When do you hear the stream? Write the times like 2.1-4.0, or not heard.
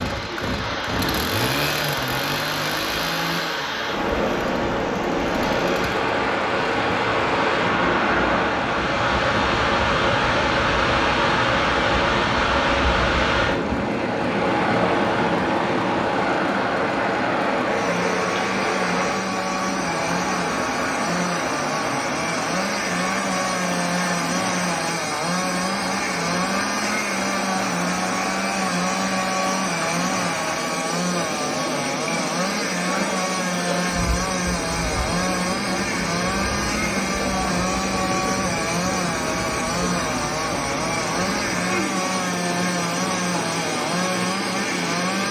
0.0-45.2.